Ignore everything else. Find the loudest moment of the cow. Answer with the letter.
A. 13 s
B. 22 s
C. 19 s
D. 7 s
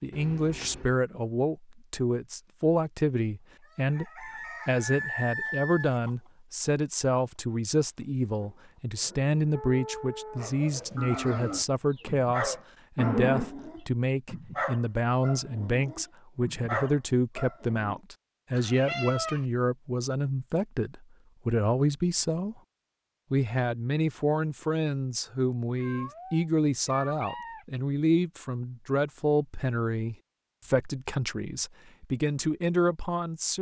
A.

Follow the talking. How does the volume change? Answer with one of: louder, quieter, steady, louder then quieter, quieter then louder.
steady.